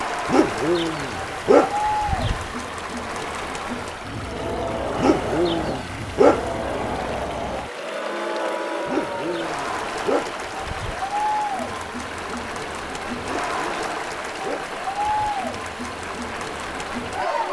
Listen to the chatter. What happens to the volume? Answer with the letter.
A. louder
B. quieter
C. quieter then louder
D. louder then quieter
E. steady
E.